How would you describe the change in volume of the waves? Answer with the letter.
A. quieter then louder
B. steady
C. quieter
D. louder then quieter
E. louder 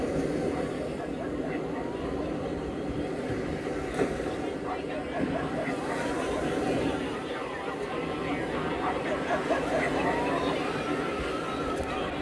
B.